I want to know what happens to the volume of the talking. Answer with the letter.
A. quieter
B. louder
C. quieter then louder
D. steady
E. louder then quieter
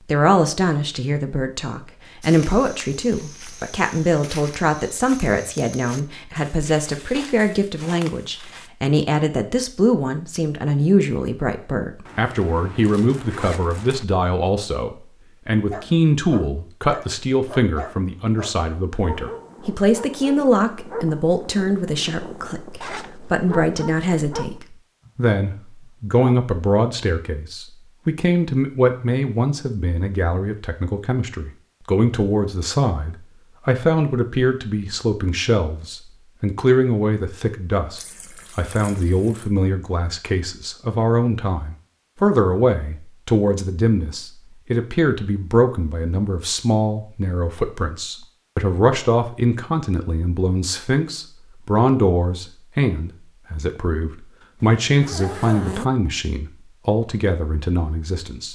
D.